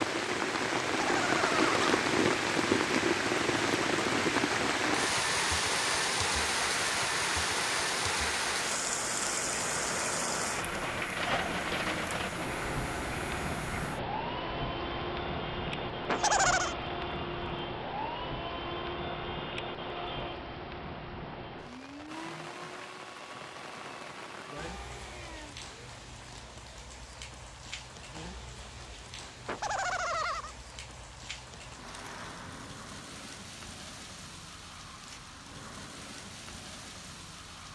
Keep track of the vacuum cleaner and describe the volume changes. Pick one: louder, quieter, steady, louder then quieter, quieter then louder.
quieter.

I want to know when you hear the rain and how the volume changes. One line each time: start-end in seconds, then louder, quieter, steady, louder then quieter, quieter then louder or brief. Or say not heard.
0.0-37.7 quieter.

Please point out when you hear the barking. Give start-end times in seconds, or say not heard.
not heard.